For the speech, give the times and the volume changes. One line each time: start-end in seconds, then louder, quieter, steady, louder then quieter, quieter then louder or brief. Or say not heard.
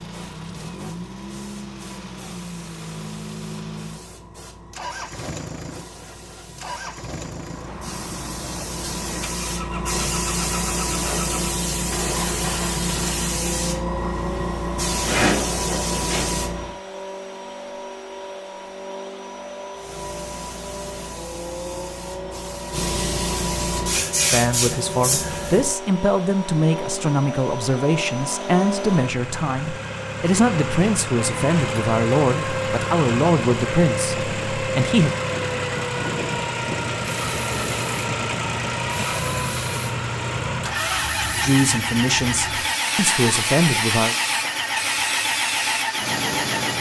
24.2-35.1 steady
41.4-44.1 brief.